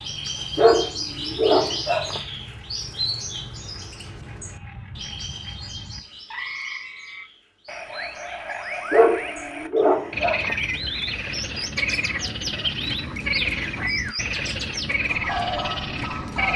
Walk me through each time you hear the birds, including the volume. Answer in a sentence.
You can hear the birds from 0.0 to 16.5 s, getting quieter then louder.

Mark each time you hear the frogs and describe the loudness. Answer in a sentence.
You can hear the frogs from 0.0 to 16.5 s, getting louder.